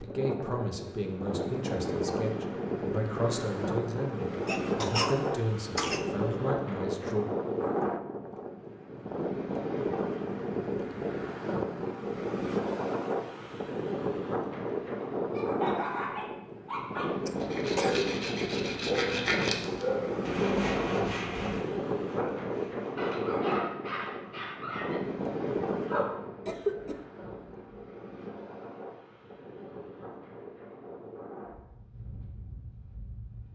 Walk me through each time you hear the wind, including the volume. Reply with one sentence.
The wind can be heard from 0.0 to 33.5 s, getting quieter.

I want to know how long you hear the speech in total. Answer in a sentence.
You can hear the speech for 7 seconds altogether.